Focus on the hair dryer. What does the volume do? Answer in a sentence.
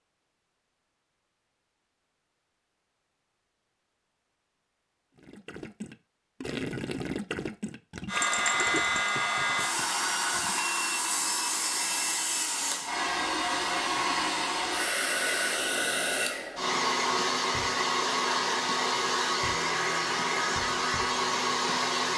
The loudness of the hair dryer stays about the same.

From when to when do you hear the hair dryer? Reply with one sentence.
The hair dryer can be heard from 8.1 to 22.1 s.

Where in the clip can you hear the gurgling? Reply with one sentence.
You can hear the gurgling from 5.2 to 10.7 s.